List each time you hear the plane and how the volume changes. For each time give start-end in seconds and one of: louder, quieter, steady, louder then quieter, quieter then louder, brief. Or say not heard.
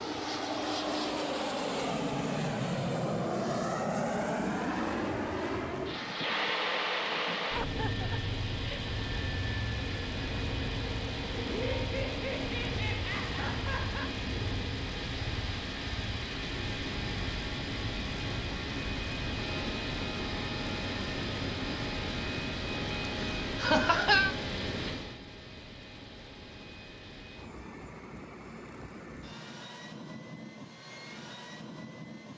0.0-32.3 quieter.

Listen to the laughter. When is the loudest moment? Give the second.
24 s.